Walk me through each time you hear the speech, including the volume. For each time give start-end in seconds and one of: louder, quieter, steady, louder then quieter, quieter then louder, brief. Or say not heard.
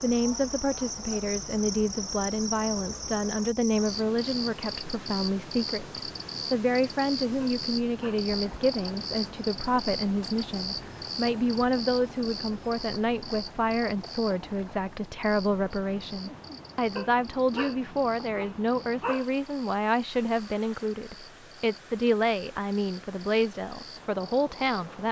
0.0-25.0 steady.